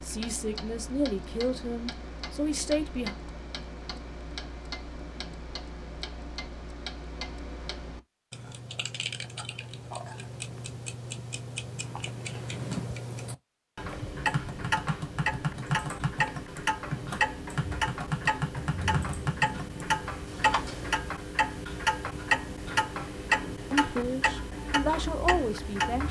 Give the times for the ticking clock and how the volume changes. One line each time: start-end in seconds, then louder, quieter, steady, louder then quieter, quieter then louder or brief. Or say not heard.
0.0-26.0 louder.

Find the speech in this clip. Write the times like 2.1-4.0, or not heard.
0.0-3.1, 23.7-26.0.